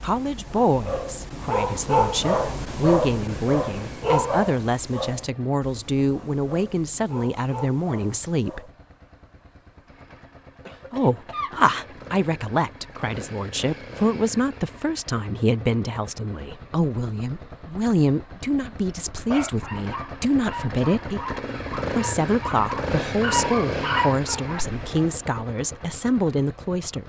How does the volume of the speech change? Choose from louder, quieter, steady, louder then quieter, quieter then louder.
steady.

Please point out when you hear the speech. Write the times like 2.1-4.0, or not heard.
0.0-8.6, 10.9-21.2, 21.9-27.0.